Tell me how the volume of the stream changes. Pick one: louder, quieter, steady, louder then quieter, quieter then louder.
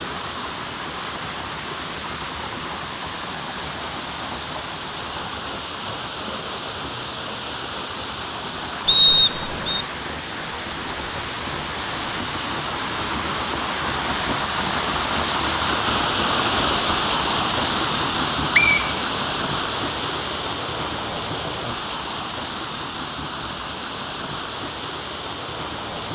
louder then quieter.